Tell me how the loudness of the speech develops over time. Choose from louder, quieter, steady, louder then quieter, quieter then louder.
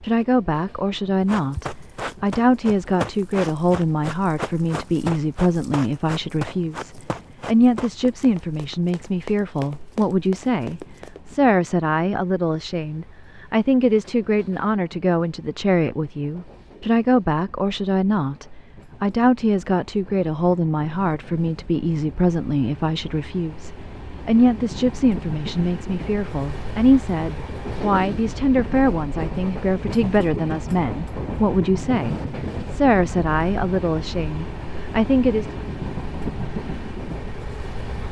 steady.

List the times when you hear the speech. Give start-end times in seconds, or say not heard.
0.0-35.5.